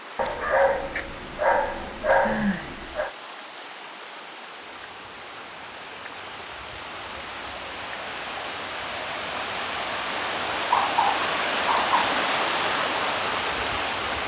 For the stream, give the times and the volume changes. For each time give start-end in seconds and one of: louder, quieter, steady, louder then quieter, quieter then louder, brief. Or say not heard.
0.0-14.2 louder.